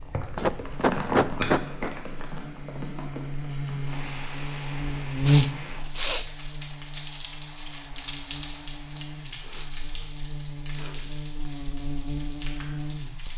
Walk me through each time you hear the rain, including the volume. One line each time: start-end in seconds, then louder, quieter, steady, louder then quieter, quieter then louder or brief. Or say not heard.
0.0-13.3 quieter.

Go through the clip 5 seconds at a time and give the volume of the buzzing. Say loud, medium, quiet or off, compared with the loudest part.
medium, loud, medium.